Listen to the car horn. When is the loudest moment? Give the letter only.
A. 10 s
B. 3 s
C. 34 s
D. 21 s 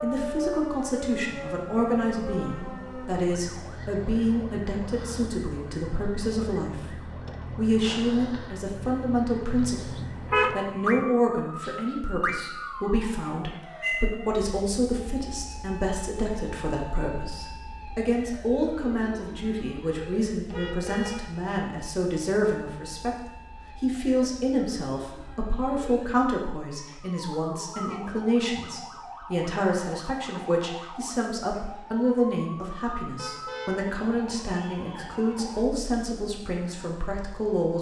A.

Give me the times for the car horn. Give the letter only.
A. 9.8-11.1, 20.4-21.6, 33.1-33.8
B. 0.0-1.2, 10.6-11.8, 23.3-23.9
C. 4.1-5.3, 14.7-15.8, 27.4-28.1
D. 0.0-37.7
A.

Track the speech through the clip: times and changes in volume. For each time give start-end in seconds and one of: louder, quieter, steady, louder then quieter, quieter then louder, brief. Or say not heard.
0.0-37.7 steady.